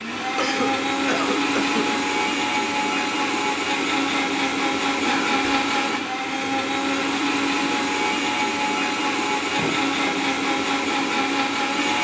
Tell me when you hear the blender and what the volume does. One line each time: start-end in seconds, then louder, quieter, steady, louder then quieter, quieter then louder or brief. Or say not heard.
0.0-12.0 steady.